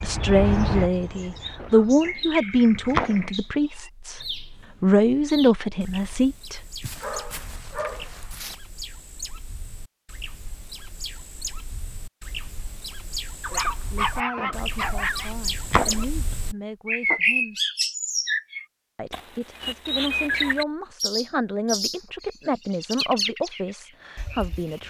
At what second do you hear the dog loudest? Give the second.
14 s.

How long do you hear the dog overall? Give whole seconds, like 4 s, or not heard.
4 s.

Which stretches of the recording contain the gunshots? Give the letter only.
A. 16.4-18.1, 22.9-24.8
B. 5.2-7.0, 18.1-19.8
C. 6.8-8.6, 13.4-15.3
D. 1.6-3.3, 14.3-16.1
D.